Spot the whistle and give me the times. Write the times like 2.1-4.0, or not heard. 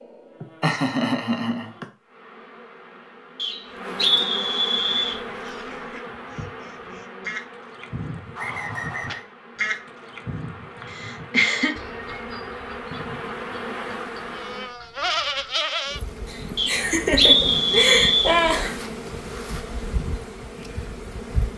3.4-5.2, 8.3-9.2, 16.6-18.4.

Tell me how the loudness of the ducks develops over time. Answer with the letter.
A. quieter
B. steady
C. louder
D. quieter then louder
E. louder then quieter
E.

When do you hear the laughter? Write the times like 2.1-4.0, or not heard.
0.4-1.9, 10.9-11.8, 16.2-18.8.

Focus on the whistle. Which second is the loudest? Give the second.
17 s.